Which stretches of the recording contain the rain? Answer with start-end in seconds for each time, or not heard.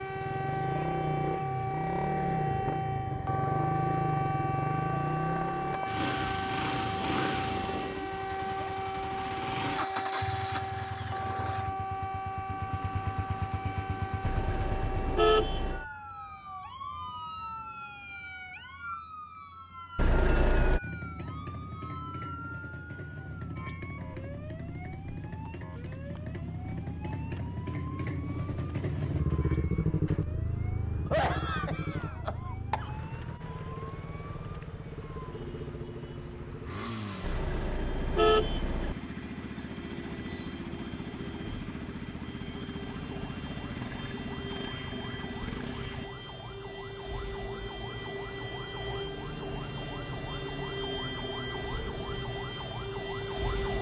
not heard.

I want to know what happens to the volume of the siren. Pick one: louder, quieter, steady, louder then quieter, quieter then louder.
quieter then louder.